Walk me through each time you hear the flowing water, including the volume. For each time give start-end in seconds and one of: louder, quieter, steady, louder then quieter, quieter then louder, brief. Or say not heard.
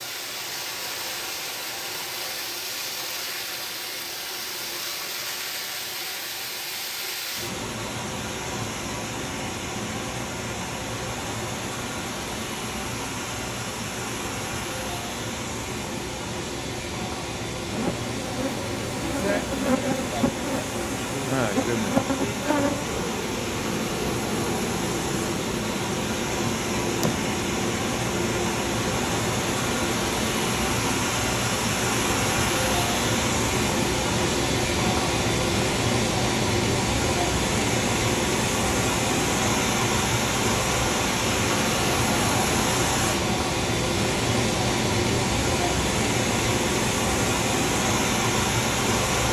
0.0-49.2 louder.